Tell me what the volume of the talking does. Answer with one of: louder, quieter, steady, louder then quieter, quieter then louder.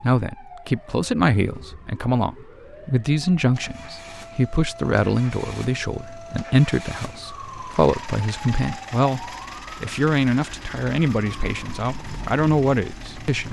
steady.